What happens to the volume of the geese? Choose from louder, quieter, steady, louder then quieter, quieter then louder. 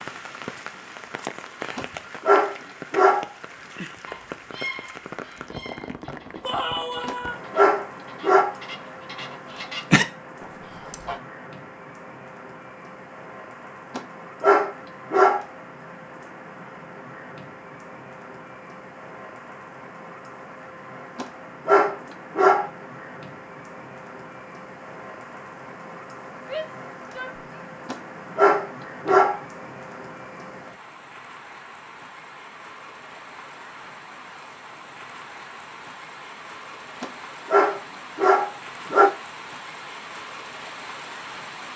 quieter then louder.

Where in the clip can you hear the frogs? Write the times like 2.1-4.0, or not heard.
not heard.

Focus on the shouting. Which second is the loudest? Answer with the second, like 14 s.
7 s.